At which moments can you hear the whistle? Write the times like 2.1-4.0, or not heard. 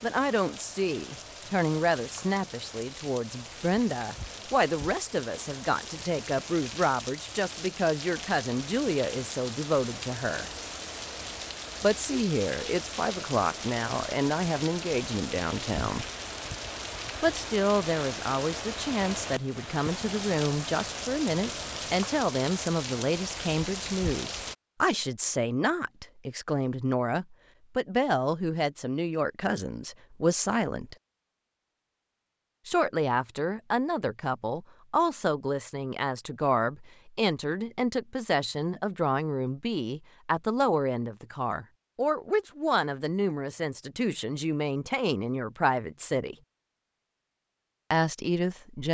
not heard.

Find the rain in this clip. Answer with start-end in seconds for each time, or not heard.
0.0-24.6.